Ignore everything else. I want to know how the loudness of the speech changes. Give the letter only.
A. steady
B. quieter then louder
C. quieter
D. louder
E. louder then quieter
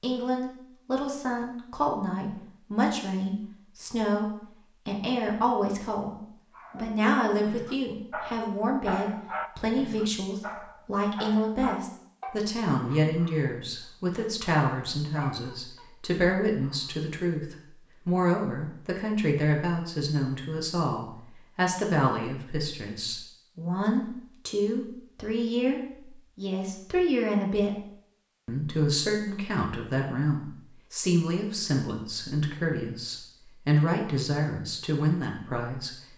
A.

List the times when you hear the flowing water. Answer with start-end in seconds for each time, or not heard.
not heard.